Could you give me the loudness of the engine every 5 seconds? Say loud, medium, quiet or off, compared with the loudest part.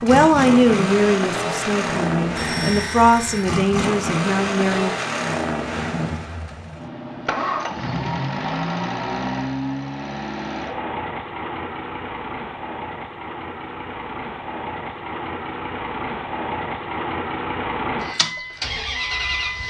loud, loud, medium, loud.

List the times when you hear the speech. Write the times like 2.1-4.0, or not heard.
0.0-4.9.